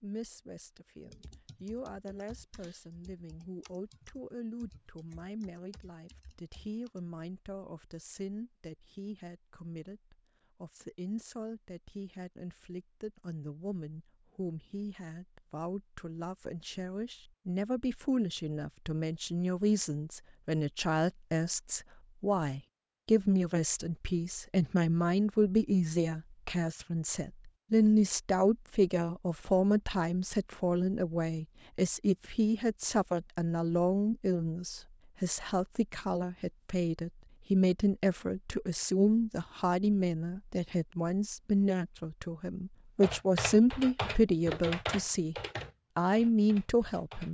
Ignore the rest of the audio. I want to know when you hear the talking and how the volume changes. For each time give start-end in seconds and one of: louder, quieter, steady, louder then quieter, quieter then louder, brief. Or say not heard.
0.0-45.4 louder
46.0-47.2 brief.